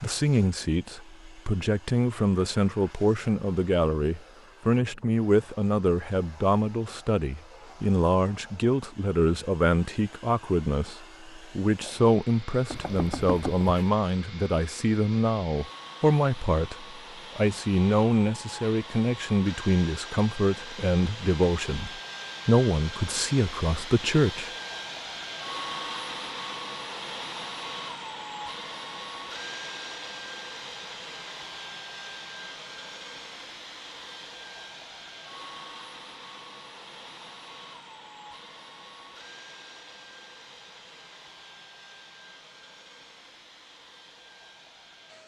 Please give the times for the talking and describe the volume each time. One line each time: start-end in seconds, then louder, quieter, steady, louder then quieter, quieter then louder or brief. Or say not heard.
0.0-24.5 steady.